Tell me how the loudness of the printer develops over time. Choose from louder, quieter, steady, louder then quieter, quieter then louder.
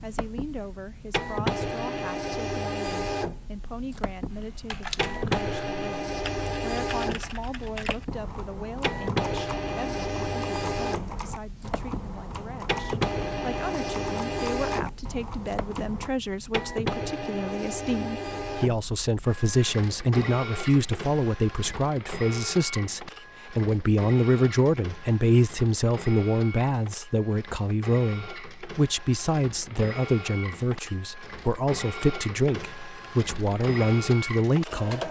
quieter.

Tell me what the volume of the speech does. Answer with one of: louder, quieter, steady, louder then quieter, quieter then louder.
louder.